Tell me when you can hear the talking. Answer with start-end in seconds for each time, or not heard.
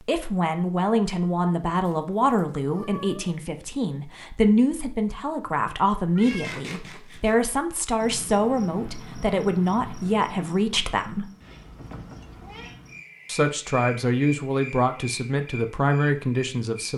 0.0-11.3, 13.2-16.9.